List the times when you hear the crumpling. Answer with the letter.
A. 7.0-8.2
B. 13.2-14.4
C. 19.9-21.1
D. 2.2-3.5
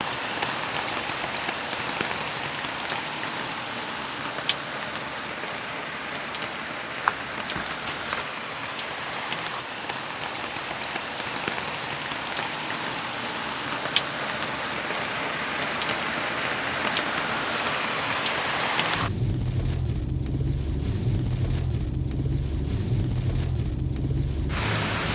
A.